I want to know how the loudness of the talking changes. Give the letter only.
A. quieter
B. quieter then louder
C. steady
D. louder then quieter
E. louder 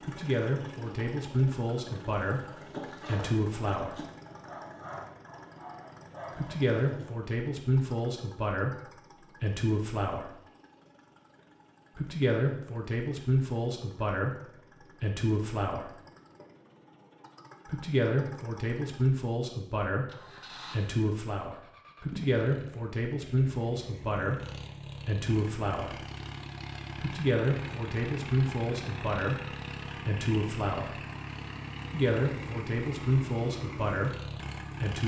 C.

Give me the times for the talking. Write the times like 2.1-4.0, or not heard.
0.0-4.0, 6.3-10.2, 11.9-15.8, 17.6-25.9, 27.0-30.9, 31.9-35.0.